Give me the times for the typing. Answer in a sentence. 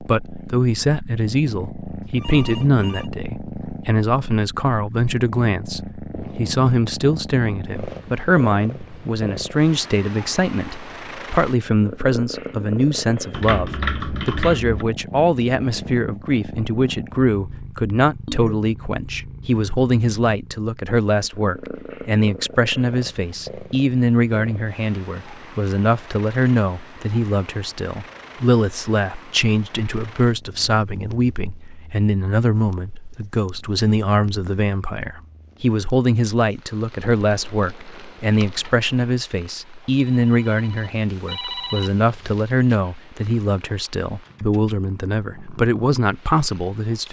The typing can be heard from 13.3 to 14.8 s and from 37.2 to 39.1 s.